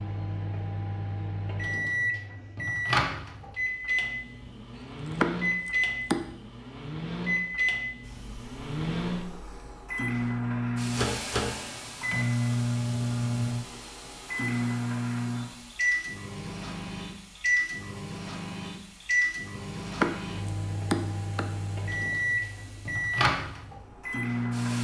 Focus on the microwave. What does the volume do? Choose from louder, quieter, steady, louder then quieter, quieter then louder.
steady.